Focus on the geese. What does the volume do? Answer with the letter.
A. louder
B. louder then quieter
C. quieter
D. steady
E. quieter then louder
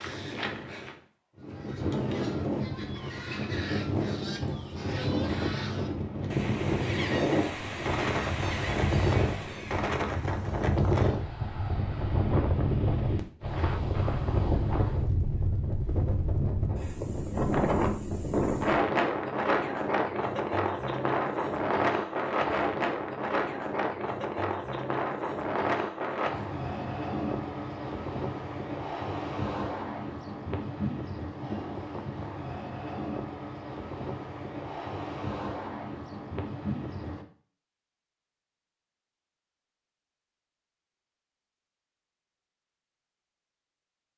A.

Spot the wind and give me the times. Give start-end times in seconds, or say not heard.
0.0-37.2.